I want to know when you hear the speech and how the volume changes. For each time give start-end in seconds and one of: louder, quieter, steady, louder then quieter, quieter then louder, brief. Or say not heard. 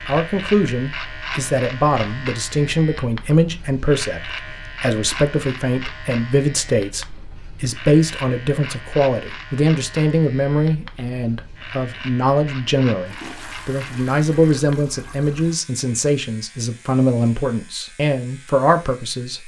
0.1-19.4 steady.